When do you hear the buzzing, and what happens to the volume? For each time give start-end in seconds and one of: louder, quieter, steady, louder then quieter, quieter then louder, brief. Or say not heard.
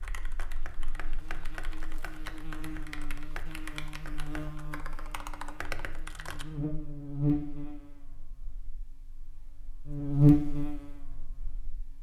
0.0-11.9 louder.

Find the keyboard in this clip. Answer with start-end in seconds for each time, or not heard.
0.0-6.5.